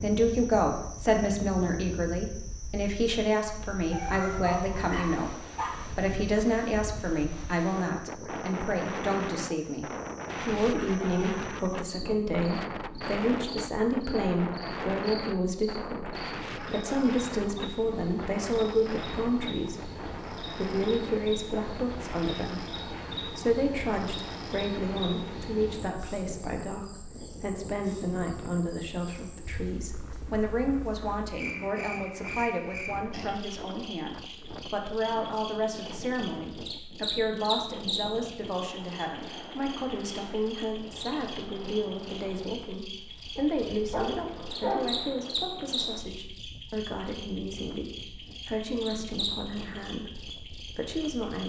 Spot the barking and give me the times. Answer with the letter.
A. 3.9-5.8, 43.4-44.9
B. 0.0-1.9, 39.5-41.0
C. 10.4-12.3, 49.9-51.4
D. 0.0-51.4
A.